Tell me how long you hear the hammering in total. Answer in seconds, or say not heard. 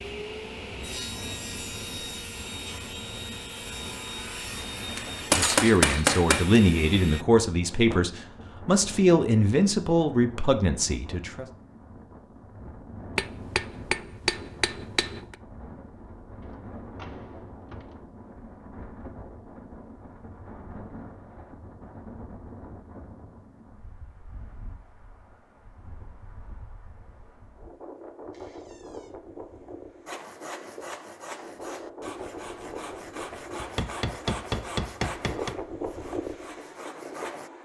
6 s.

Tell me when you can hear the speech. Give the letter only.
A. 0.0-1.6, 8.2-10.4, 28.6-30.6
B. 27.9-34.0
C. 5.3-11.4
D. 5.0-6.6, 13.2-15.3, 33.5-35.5
C.